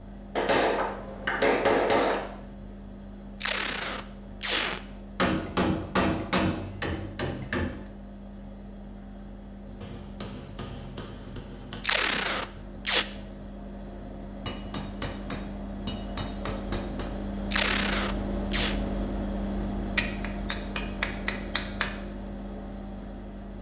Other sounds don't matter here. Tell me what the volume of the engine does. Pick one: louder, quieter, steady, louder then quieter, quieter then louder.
louder.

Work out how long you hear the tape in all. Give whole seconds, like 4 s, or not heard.
4 s.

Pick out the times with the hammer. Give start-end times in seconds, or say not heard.
0.3-2.2, 5.2-7.8, 9.8-11.8, 14.4-17.1, 19.9-21.9.